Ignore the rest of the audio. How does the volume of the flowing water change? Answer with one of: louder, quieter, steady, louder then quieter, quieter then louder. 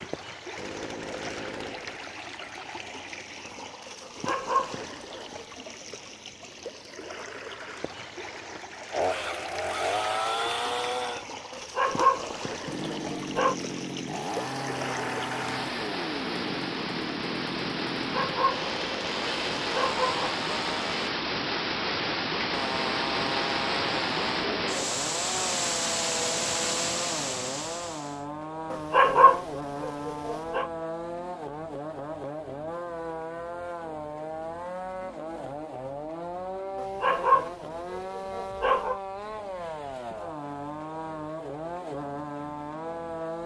louder.